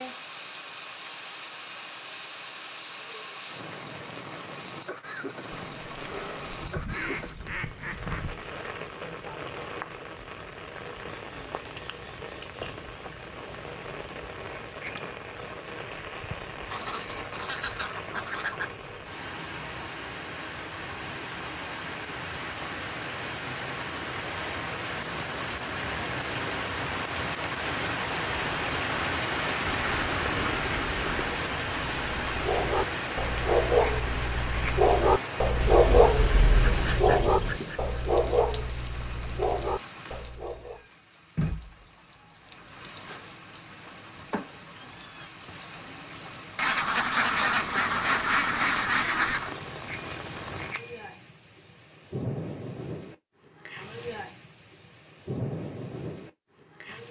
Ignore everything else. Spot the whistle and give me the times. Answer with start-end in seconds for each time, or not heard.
not heard.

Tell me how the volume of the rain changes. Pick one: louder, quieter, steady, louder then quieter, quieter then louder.
louder then quieter.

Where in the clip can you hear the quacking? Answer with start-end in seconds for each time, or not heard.
5.5-8.4, 16.6-18.6, 29.8-31.4, 35.6-37.8, 46.5-49.5.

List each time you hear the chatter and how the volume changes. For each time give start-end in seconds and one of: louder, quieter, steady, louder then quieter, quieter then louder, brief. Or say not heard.
not heard.